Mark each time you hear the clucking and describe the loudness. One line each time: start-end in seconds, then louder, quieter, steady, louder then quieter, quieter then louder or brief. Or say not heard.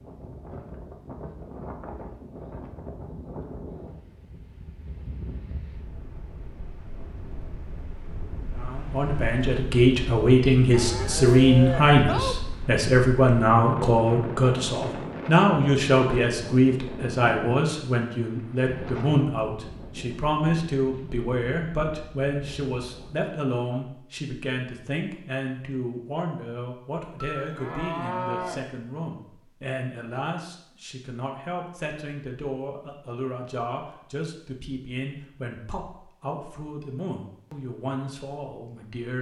not heard.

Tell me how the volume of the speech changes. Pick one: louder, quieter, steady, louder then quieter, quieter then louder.
quieter.